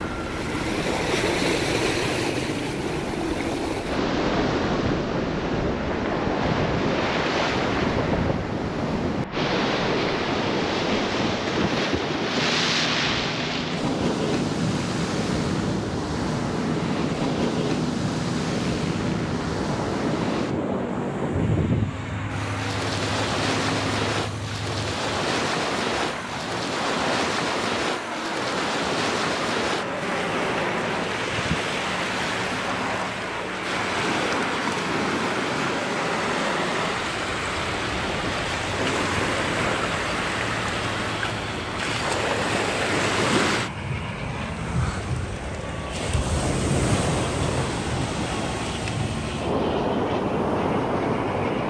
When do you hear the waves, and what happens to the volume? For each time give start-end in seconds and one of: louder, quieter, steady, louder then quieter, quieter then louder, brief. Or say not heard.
0.0-51.6 steady.